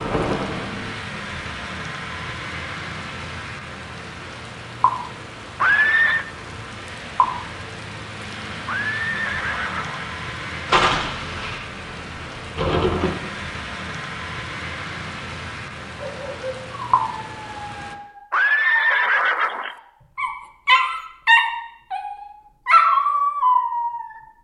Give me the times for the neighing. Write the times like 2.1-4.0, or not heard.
5.6-6.2, 8.7-10.1, 18.3-19.8.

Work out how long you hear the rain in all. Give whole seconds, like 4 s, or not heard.
18 s.